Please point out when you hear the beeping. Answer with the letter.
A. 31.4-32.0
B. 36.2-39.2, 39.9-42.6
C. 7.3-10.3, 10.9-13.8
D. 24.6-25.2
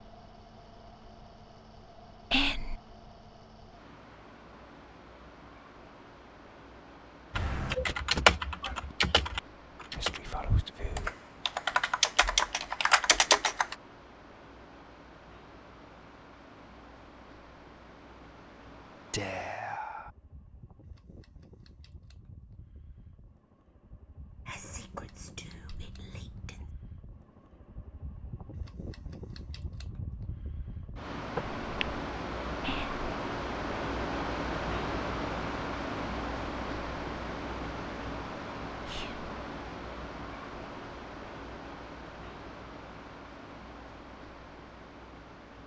A.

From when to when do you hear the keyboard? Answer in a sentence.
You can hear the keyboard from 7.3 to 10.3 s and from 10.9 to 13.8 s.